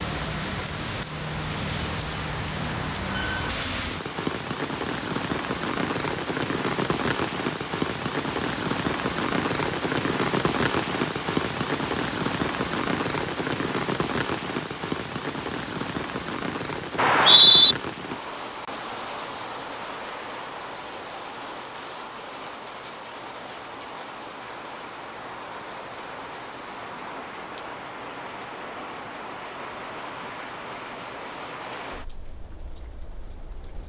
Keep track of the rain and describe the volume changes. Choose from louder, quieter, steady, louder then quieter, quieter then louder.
quieter.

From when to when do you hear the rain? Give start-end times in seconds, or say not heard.
0.0-33.8.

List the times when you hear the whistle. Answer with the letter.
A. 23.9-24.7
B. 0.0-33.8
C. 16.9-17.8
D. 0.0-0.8
C.